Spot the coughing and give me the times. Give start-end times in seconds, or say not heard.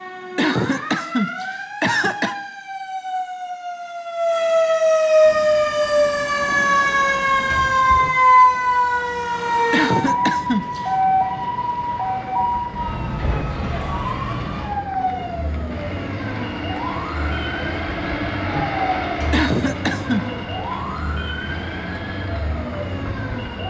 0.3-2.4, 9.7-10.9, 19.3-20.2.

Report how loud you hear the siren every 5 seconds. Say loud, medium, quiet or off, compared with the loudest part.
medium, loud, medium, quiet, quiet.